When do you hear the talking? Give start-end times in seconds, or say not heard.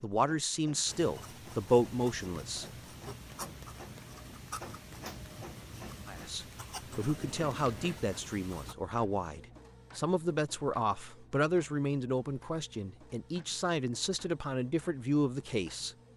0.0-3.1, 6.0-15.9.